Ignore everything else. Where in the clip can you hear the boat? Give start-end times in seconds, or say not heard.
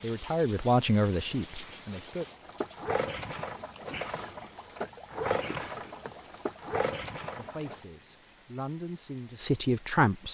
1.9-7.8.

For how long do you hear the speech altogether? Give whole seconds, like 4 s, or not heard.
5 s.